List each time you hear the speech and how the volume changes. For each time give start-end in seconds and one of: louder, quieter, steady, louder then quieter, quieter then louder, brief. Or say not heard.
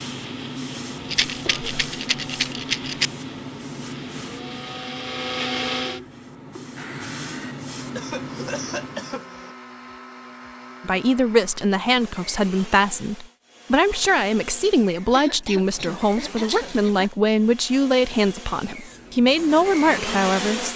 10.8-20.7 steady.